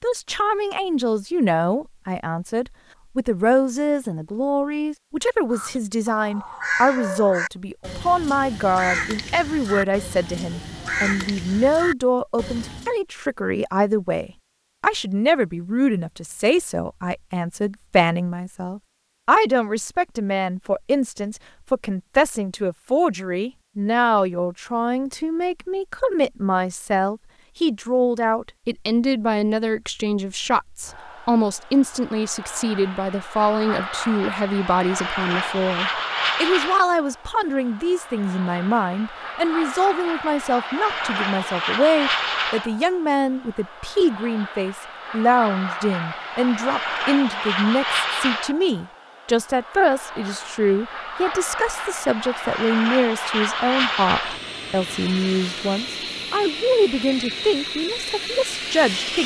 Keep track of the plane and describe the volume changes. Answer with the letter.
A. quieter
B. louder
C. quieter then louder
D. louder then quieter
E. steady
E.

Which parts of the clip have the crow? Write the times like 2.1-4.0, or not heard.
5.5-12.9.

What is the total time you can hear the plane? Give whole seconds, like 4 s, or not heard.
28 s.